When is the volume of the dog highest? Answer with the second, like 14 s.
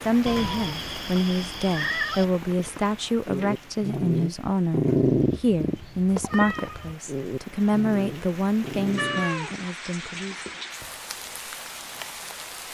5 s.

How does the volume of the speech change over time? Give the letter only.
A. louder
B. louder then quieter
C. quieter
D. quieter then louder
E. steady
E.